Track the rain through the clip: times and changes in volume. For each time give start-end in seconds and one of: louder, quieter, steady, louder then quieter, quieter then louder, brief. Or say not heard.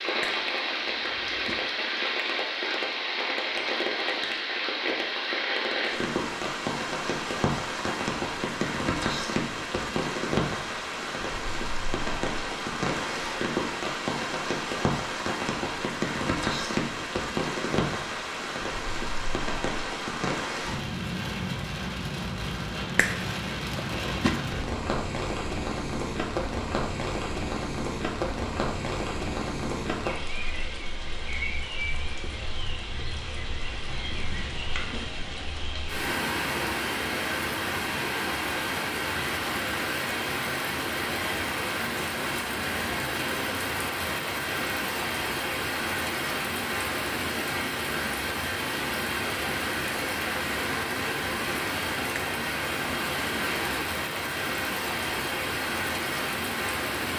0.0-57.1 steady.